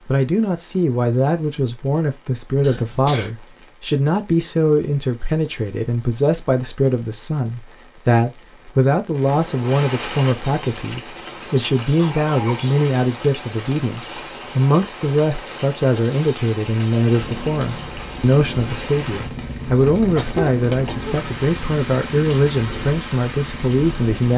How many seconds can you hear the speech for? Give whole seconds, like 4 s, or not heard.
24 s.